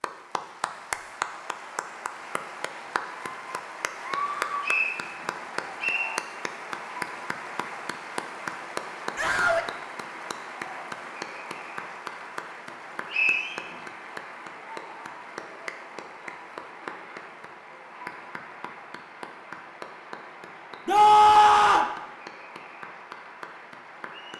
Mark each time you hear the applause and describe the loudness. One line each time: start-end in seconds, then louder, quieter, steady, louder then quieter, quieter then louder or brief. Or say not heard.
0.0-24.3 quieter.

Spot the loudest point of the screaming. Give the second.
21 s.